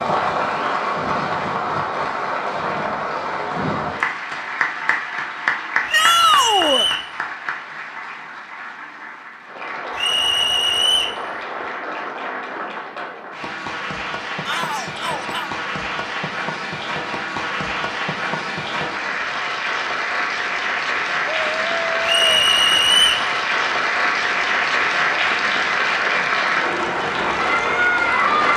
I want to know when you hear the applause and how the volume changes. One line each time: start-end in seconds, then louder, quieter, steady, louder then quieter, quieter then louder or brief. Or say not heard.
0.0-28.5 quieter then louder.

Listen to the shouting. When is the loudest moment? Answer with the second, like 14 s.
6 s.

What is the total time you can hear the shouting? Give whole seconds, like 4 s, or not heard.
3 s.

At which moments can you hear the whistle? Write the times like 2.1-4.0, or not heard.
5.8-7.1, 9.9-11.2, 22.1-23.3.